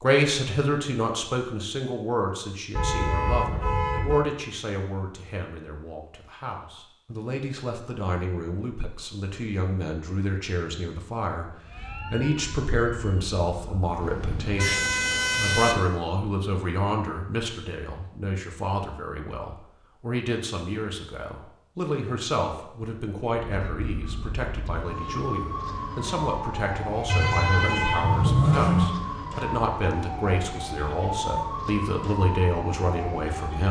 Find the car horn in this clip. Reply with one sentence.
You can hear the car horn from 2.8 to 4.2 s, from 14.0 to 15.8 s and from 27.1 to 28.9 s.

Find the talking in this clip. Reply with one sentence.
The talking can be heard from 0.0 to 11.5 s and from 12.1 to 33.6 s.